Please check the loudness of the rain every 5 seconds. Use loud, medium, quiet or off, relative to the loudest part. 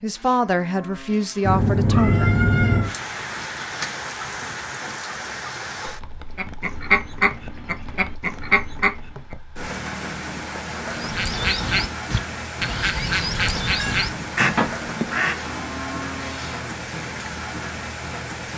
loud, medium, loud, loud.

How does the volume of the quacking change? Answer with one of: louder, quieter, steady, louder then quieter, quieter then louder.
steady.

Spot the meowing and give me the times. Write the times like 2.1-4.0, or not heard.
1.4-3.0, 13.8-14.7.